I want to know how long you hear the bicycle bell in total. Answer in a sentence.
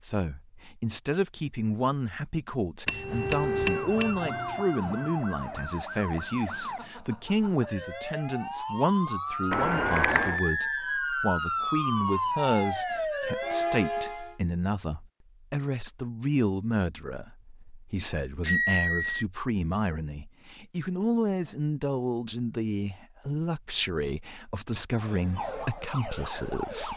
You can hear the bicycle bell for 3 seconds altogether.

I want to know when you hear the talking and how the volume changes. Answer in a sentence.
The talking can be heard from 0.0 to 26.9 s, at a steady volume.